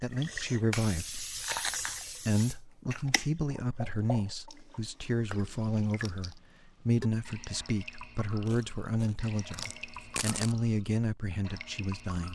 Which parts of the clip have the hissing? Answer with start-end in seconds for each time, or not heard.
0.2-4.2.